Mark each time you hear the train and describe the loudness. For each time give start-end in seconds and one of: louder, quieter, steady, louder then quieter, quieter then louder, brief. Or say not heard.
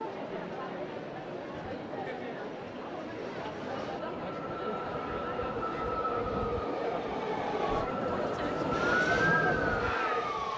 0.0-10.5 louder.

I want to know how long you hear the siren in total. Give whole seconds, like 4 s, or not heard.
2 s.